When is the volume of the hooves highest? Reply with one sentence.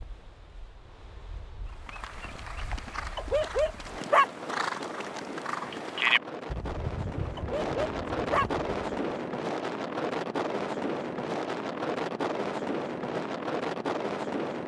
The loudest moment of the hooves is at 6 seconds.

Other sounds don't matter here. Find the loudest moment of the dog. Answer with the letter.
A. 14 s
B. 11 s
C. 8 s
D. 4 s
D.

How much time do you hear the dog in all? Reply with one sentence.
The dog can be heard for 2 seconds in total.